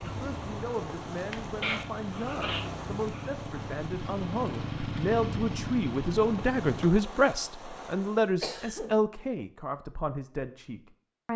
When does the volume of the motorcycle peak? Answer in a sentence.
The loudest moment of the motorcycle is at 5 seconds.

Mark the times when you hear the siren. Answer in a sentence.
The siren can't be heard in this clip.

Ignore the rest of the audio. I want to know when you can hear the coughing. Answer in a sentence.
You can hear the coughing from 1.6 to 3.3 s and from 8.4 to 9.0 s.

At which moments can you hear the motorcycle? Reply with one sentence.
You can hear the motorcycle from 0.0 to 6.9 s.